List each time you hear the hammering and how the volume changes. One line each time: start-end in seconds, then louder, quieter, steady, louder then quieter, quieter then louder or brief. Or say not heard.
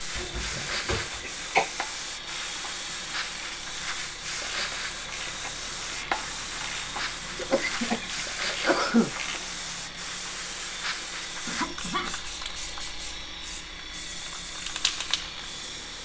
not heard.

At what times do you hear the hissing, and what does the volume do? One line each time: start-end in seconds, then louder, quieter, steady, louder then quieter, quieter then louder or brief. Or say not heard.
0.0-15.9 steady.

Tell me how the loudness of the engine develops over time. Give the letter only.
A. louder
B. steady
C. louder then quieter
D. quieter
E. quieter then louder
B.